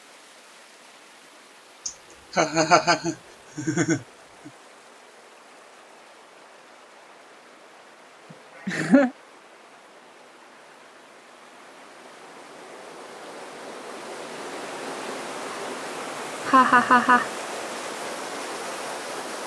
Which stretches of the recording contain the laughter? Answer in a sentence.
You can hear the laughter from 1.9 to 4.0 s, from 8.7 to 9.1 s and from 16.4 to 17.2 s.